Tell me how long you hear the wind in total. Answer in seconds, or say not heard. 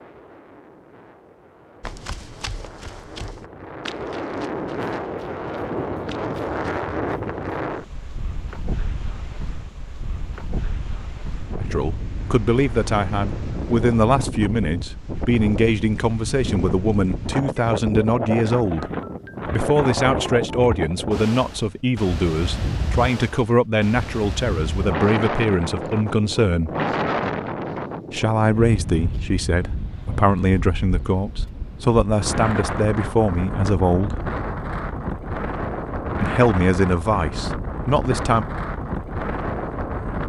40 s.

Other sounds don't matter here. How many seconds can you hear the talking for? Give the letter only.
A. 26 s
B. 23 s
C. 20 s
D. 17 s
B.